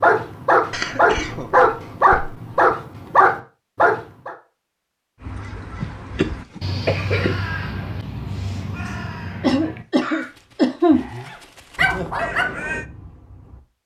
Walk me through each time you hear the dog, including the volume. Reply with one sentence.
You can hear the dog from 0.0 to 4.3 s, at a steady volume; and briefly from 11.2 to 13.6 s.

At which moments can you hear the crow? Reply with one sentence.
You can hear the crow from 5.2 to 12.8 s.